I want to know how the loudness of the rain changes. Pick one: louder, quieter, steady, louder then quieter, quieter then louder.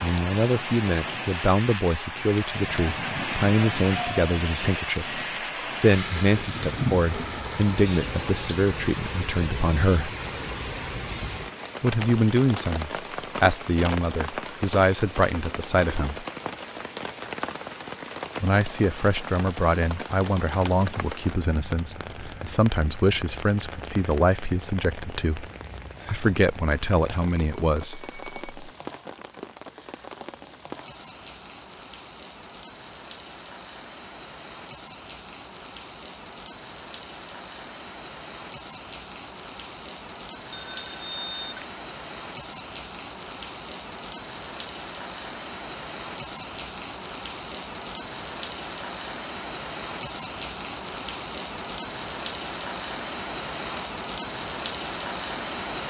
quieter then louder.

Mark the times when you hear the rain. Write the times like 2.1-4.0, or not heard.
0.0-55.8.